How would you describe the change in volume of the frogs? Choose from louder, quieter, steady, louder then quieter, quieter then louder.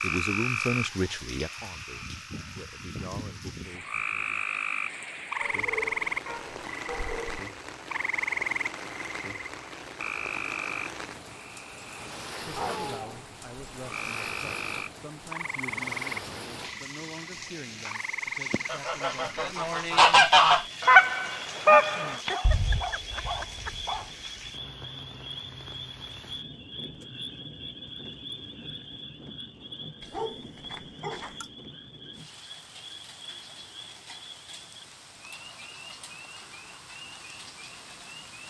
quieter.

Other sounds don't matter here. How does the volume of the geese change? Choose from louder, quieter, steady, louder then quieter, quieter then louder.
louder then quieter.